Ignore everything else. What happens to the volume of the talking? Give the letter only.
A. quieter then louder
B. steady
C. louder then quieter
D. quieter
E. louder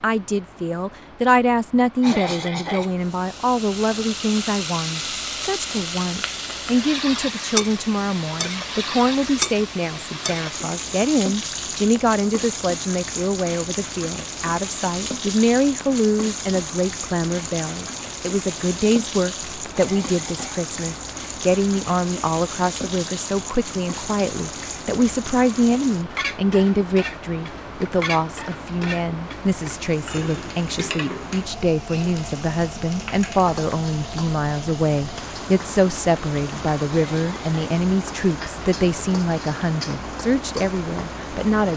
B.